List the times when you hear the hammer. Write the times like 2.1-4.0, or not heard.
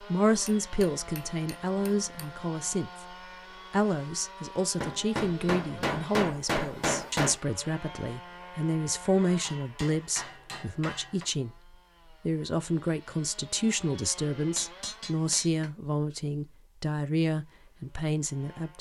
0.5-2.2, 4.8-7.4, 9.4-11.2, 14.6-15.7.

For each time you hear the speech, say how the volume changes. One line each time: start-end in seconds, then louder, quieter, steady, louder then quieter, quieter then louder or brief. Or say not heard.
0.0-18.7 steady.